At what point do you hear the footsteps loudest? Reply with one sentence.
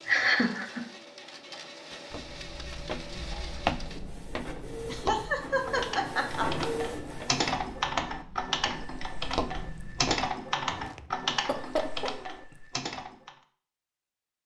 The volume of the footsteps peaks at 4 seconds.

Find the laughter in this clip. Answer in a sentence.
The laughter can be heard from 0.1 to 0.8 s, from 4.8 to 6.7 s and from 11.3 to 12.1 s.